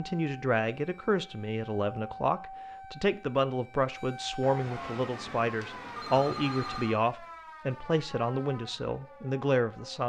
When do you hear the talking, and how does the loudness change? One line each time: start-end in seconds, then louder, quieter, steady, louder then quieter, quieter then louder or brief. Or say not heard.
0.0-10.0 steady.